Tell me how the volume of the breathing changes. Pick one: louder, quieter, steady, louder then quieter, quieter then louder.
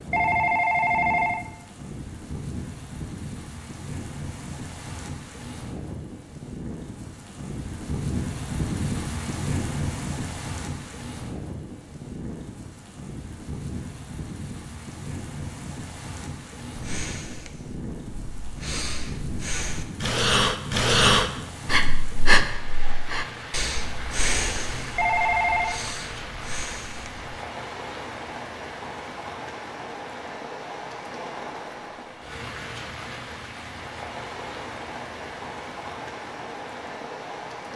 louder then quieter.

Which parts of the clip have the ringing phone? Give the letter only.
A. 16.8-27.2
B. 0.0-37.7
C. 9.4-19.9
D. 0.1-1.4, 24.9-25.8
D.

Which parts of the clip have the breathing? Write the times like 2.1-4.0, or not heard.
16.8-27.2.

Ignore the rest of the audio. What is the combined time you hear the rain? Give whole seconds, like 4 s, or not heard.
38 s.